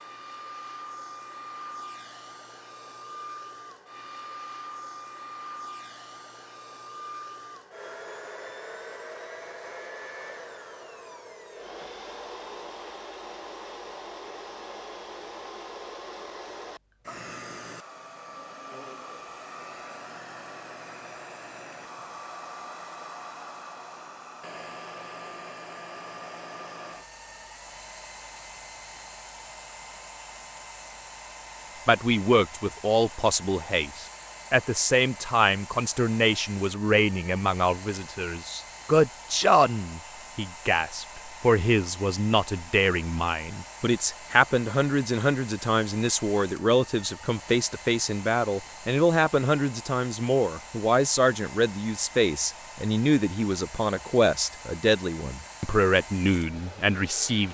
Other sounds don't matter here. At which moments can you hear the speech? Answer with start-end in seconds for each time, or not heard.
31.9-57.5.